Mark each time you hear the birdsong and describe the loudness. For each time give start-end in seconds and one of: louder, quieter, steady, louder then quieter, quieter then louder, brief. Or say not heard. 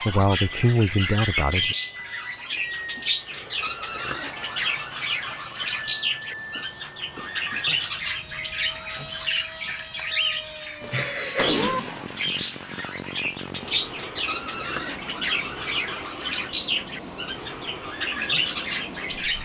0.0-19.3 steady.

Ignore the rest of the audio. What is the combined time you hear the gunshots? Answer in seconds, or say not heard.
2 s.